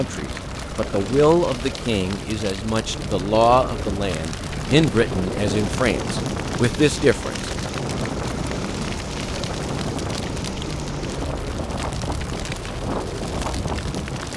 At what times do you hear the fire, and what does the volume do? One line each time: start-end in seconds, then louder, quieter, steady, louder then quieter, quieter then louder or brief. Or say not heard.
0.0-14.3 steady.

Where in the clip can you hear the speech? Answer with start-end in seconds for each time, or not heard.
0.0-7.5.